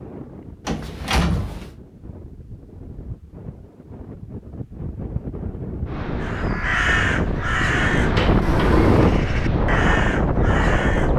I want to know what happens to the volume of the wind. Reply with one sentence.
The volume of the wind goes up.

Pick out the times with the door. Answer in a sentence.
You can hear the door from 0.7 to 1.8 s and from 8.2 to 9.2 s.